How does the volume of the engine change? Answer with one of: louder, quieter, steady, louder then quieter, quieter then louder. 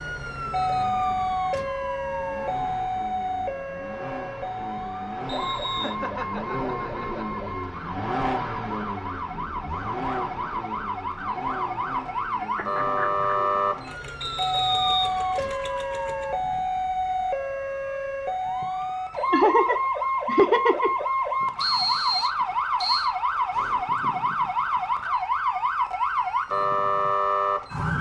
louder then quieter.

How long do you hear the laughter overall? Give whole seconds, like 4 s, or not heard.
4 s.